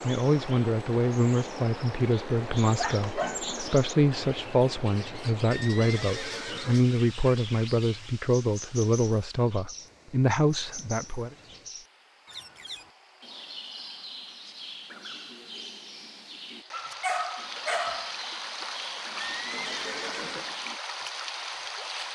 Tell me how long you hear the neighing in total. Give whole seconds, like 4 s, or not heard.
3 s.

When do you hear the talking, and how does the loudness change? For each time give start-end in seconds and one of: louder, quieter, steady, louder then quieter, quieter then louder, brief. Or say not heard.
0.0-11.3 steady.